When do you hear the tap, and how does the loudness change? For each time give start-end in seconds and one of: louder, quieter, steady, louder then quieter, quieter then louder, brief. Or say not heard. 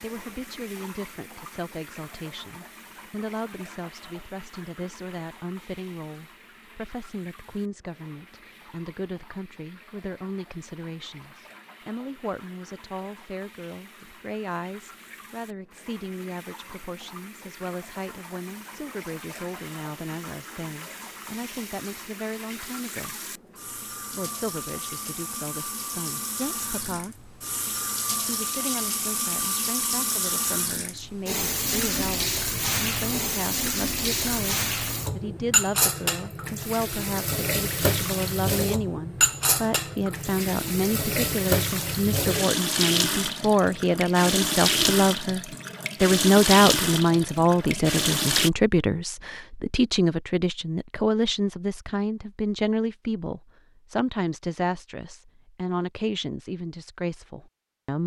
0.0-48.5 louder.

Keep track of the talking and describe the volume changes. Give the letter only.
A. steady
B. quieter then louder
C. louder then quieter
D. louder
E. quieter
D.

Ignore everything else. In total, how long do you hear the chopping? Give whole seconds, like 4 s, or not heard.
not heard.